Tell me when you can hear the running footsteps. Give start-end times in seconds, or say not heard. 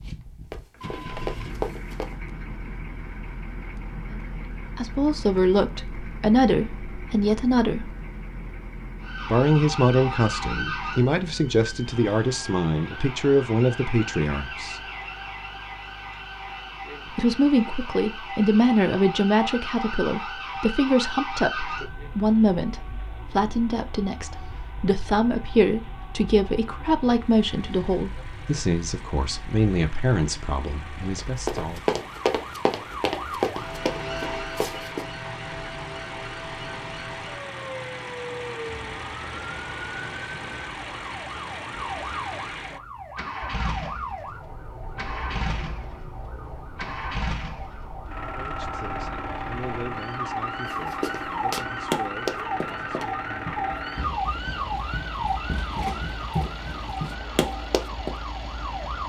0.0-2.1, 31.1-35.0, 50.6-58.1.